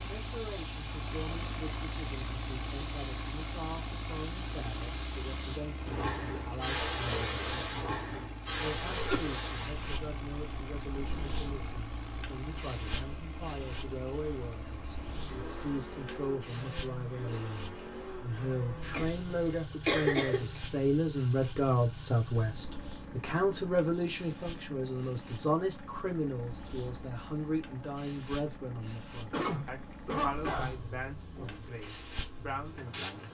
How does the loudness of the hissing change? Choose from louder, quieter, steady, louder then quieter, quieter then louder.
quieter.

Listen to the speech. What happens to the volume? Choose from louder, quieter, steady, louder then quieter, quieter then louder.
louder then quieter.